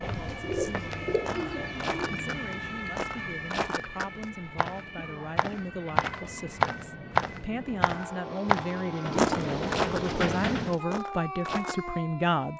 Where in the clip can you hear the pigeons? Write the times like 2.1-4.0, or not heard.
0.1-2.2, 5.0-6.6, 9.0-10.8.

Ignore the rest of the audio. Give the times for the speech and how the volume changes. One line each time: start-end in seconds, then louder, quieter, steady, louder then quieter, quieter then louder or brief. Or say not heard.
0.1-12.5 louder.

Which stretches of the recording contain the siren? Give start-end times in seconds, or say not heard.
0.0-7.8, 10.8-12.5.